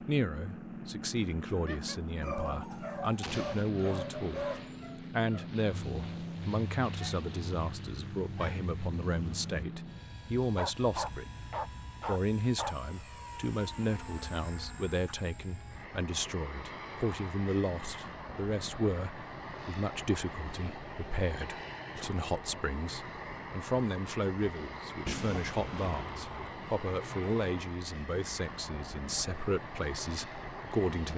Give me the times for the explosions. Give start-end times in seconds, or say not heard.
3.2-3.7, 25.1-26.4.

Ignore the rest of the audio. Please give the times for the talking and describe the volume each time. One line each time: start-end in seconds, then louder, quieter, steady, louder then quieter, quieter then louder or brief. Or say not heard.
0.0-31.1 steady.